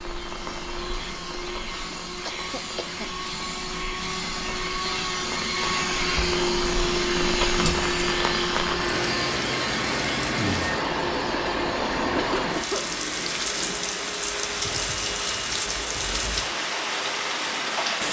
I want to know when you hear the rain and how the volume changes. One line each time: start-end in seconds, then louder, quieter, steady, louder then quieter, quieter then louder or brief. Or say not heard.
0.0-18.0 louder.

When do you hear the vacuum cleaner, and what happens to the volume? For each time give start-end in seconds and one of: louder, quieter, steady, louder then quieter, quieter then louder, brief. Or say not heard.
0.0-18.0 louder then quieter.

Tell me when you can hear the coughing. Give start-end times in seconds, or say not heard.
1.9-3.1, 12.2-12.9.